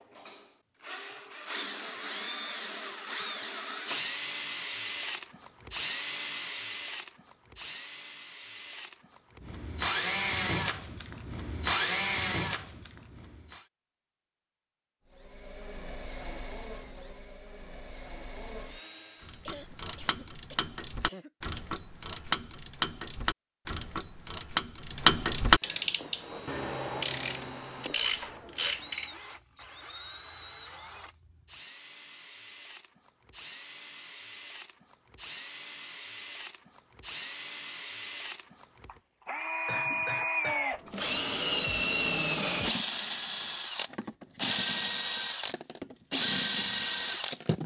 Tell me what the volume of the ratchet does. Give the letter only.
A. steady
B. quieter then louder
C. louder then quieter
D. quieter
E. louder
E.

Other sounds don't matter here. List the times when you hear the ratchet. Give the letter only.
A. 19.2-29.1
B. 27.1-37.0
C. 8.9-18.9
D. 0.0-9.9
A.